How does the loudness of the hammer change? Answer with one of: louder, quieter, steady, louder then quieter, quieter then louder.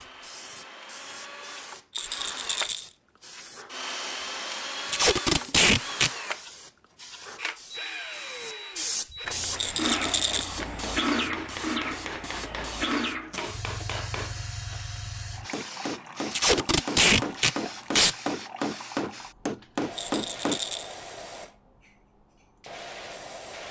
louder.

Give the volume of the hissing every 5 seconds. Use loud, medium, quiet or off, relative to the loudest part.
quiet, loud, loud, medium, medium.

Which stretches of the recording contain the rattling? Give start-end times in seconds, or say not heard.
1.9-2.9, 9.6-10.5, 19.9-21.0.